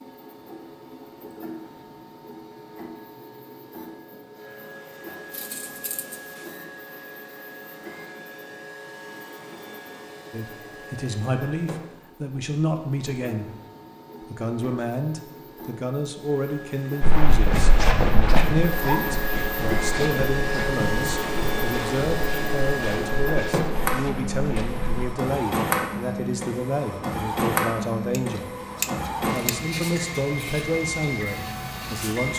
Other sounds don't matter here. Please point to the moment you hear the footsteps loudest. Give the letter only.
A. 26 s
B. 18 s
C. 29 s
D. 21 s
B.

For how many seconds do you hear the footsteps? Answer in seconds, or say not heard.
8 s.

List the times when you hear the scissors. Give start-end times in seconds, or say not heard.
5.3-6.6, 28.1-29.5.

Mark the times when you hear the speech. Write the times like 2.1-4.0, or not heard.
10.3-13.5, 14.2-28.5, 29.3-32.3.